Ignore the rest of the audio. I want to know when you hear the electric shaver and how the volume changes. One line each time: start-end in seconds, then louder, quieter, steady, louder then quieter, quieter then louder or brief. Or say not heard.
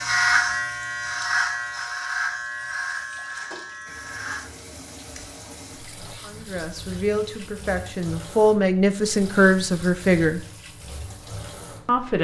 0.0-4.4 quieter.